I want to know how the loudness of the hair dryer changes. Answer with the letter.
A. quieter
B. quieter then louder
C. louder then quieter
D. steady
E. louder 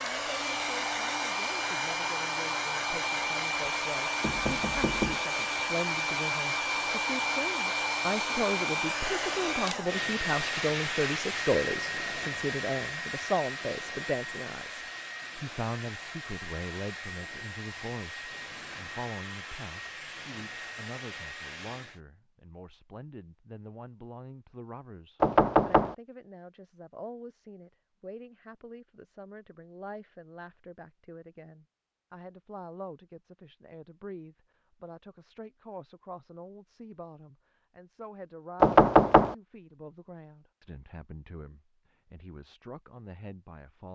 A.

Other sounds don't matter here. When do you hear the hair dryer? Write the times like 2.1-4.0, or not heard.
0.0-22.0.